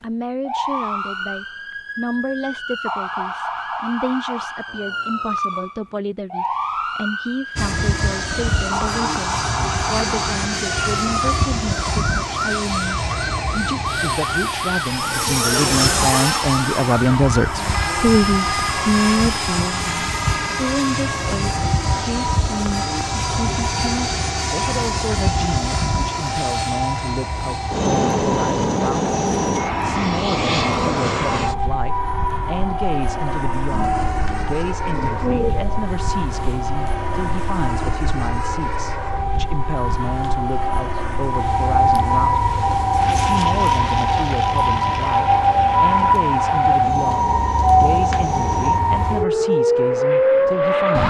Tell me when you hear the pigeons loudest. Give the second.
35 s.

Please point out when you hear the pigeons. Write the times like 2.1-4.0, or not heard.
33.7-35.9.